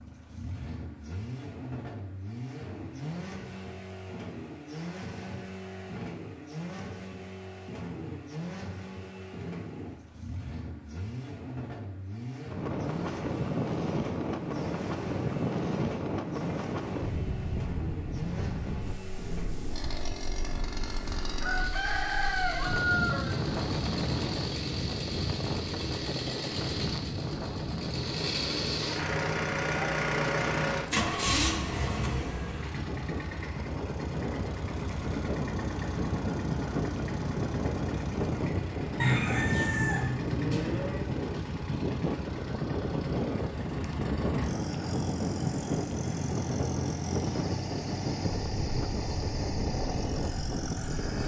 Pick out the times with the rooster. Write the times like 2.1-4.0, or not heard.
21.4-23.4, 39.0-41.0.